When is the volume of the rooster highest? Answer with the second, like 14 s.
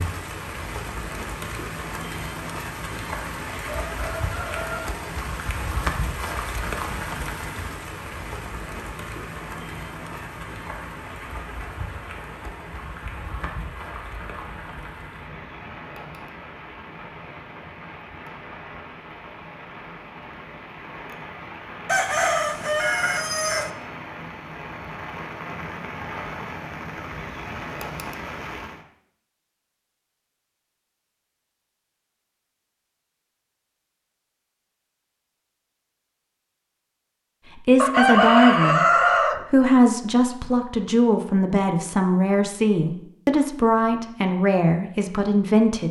38 s.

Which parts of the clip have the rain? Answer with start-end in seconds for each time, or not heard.
0.0-28.9.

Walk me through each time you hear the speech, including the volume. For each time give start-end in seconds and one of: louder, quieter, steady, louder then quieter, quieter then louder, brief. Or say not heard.
37.6-38.9 brief
39.5-45.8 steady.